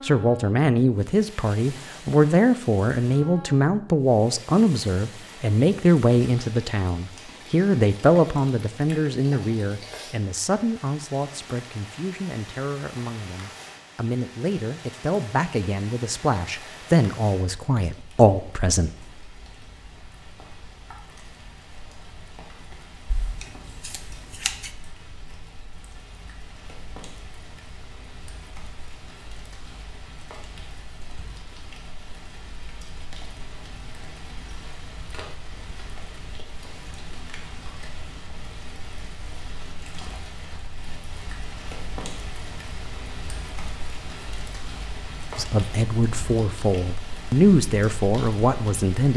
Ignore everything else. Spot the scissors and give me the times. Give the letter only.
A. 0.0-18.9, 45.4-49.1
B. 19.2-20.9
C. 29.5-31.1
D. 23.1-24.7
D.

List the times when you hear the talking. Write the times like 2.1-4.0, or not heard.
0.0-18.9, 45.4-49.1.